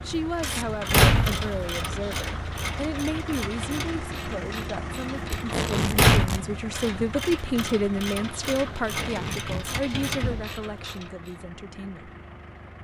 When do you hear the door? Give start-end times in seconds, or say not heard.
0.4-1.6, 5.2-6.3, 9.9-10.6.